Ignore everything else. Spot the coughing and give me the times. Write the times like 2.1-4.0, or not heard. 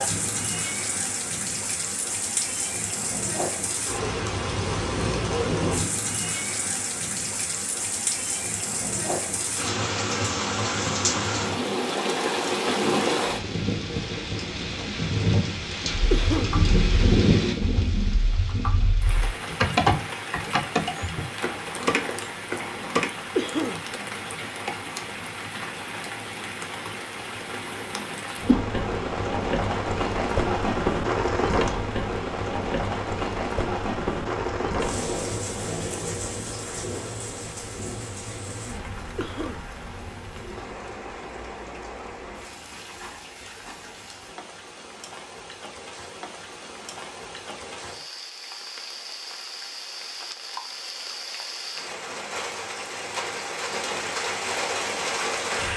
16.1-16.6, 23.4-23.9, 39.1-39.6.